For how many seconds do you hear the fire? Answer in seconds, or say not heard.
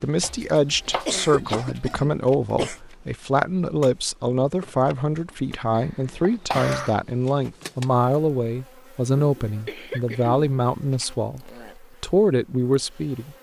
not heard.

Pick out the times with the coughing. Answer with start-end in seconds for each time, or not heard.
1.1-2.8, 5.8-7.0, 9.4-11.2.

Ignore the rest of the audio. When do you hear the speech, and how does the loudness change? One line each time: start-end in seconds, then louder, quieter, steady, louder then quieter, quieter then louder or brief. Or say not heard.
0.0-13.3 steady.